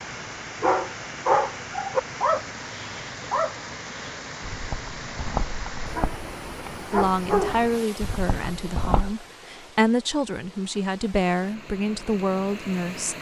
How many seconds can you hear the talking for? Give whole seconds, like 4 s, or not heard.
6 s.